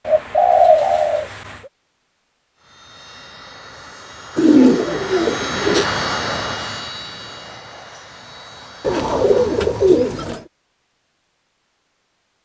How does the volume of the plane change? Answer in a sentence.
The volume of the plane goes up, then down.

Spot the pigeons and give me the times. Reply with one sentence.
You can hear the pigeons from 0.1 to 1.6 s, from 4.3 to 5.8 s and from 8.8 to 10.4 s.